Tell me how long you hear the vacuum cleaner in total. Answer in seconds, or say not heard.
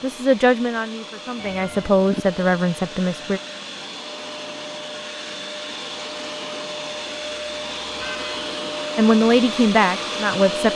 11 s.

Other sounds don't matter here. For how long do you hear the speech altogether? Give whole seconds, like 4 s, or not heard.
5 s.